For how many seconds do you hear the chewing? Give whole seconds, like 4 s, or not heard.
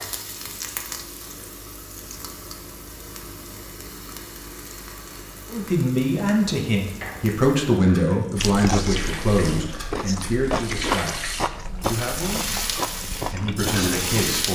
6 s.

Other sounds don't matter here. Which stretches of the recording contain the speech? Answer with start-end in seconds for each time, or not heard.
5.5-12.4, 13.3-14.5.